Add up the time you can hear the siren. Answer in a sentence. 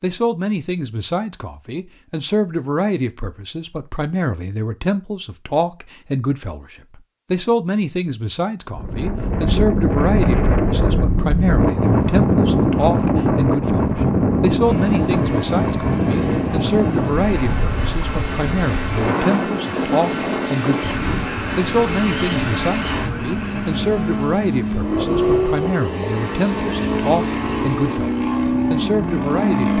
The siren can't be heard in this clip.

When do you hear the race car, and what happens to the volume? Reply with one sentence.
The race car can be heard from 14.7 to 29.7 s, getting louder.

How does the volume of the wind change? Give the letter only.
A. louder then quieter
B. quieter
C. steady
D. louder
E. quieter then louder
B.